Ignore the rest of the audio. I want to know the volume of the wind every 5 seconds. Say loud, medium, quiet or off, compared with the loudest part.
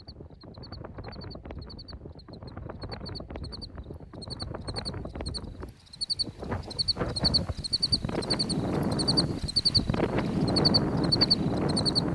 quiet, medium, loud.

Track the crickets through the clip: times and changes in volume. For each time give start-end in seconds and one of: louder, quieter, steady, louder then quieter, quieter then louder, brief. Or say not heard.
0.0-12.1 louder.